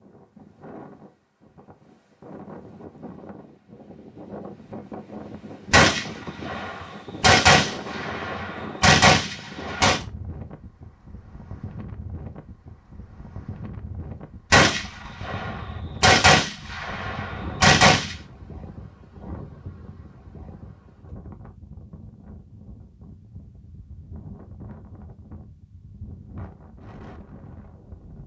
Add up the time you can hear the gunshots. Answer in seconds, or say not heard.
8 s.